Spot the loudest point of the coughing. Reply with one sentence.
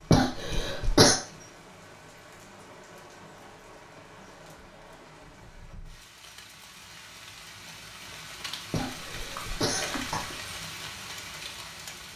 The volume of the coughing peaks at 1 second.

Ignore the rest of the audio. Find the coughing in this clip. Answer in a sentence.
You can hear the coughing from 0.1 to 1.1 s and from 8.7 to 10.3 s.